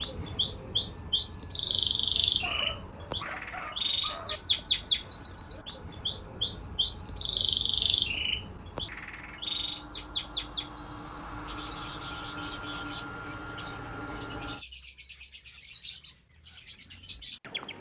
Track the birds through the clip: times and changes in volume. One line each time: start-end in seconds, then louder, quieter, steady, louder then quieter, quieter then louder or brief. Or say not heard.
0.0-17.7 quieter.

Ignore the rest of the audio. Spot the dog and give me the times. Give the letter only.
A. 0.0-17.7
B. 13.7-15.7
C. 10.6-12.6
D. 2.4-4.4
D.